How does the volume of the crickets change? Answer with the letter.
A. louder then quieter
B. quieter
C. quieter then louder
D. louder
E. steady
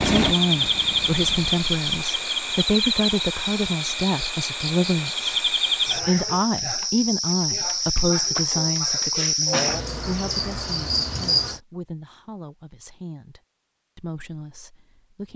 E.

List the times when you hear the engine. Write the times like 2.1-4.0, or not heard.
0.0-1.7.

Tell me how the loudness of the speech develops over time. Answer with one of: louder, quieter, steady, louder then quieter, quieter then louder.
quieter.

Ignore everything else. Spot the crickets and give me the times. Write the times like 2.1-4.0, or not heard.
0.0-11.6.